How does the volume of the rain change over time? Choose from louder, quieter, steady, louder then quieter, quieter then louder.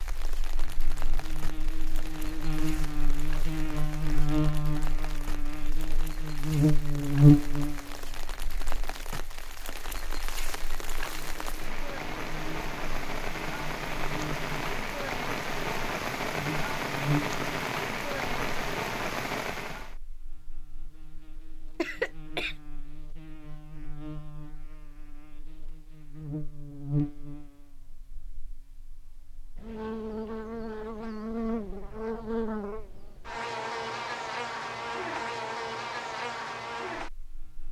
louder.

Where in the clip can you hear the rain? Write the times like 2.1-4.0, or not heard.
0.0-19.9.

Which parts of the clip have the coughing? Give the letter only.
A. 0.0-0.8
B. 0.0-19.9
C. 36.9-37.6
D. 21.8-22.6
D.